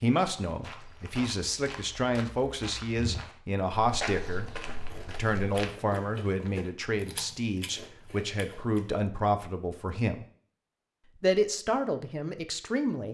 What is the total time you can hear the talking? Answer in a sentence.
The talking can be heard for 12 seconds in total.